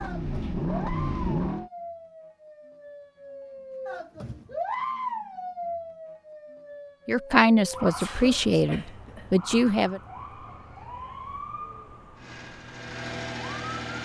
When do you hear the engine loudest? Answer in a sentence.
The loudest moment of the engine is at 1 second.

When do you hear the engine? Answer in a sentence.
The engine can be heard from 0.0 to 1.7 s and from 12.2 to 14.0 s.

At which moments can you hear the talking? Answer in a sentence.
The talking can be heard from 7.0 to 10.0 s.